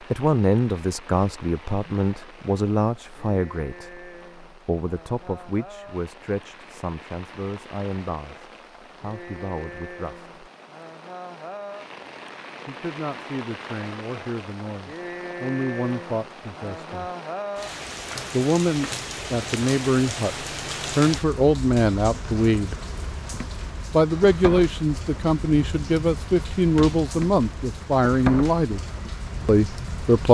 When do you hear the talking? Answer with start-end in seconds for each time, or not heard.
0.1-10.3, 12.7-17.1, 18.3-22.8, 23.9-28.8, 29.4-30.2.